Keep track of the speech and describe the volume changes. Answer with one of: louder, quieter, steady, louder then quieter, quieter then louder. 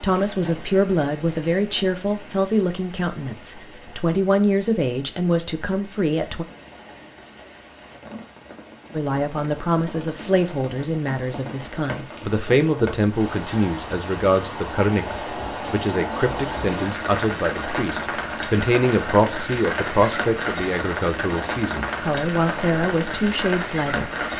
steady.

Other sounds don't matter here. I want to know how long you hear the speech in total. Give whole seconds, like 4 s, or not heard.
22 s.